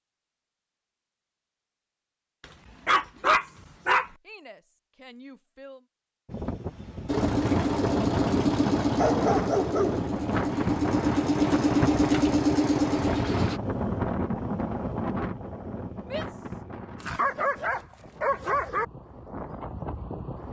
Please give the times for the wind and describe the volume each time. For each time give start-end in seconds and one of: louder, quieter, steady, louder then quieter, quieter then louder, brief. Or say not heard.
6.2-20.4 quieter.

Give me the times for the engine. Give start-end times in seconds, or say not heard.
7.0-13.6.